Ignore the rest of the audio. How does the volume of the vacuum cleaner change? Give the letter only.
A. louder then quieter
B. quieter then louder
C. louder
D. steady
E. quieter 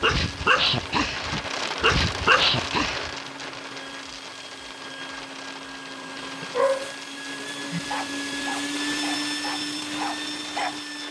C.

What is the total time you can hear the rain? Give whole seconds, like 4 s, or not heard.
11 s.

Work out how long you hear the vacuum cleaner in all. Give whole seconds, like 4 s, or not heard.
11 s.